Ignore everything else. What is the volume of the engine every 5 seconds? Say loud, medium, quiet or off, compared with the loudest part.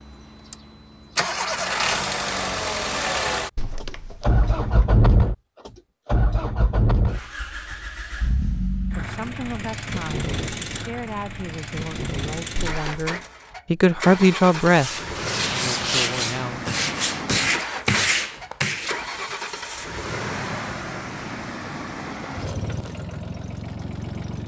loud, loud, medium, medium, medium.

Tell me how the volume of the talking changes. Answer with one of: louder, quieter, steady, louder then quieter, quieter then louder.
louder then quieter.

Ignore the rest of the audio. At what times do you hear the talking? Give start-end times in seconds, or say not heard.
8.9-16.7.